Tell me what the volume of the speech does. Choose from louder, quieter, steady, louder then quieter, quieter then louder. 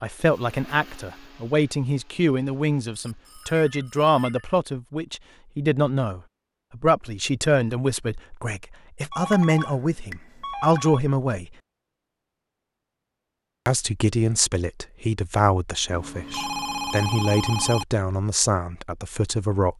steady.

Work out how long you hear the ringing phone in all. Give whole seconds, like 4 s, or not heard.
5 s.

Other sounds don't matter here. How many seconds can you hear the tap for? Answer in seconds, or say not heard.
not heard.